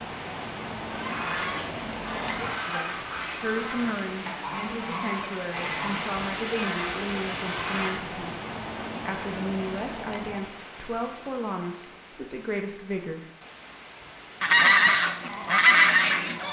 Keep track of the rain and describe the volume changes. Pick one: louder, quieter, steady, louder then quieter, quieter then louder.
quieter.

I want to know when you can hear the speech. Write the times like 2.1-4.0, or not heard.
2.6-13.2.